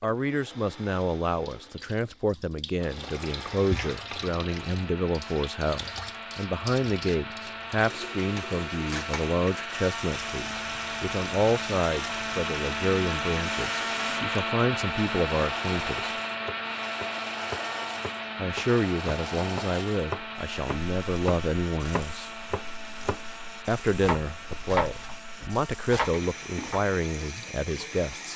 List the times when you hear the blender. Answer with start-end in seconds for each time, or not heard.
0.0-28.3.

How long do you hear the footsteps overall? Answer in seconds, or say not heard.
not heard.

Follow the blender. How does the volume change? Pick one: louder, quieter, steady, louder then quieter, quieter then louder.
louder then quieter.